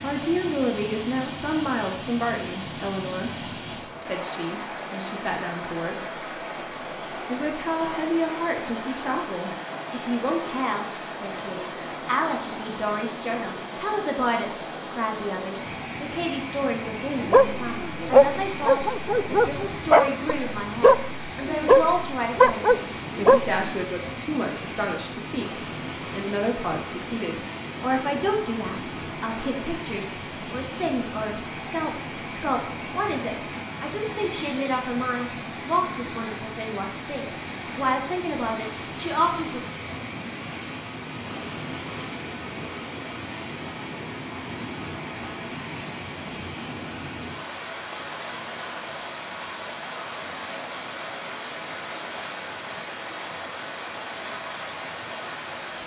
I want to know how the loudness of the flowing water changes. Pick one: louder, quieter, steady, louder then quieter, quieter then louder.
steady.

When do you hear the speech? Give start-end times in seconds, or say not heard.
0.0-3.3, 4.0-6.0, 7.2-39.6.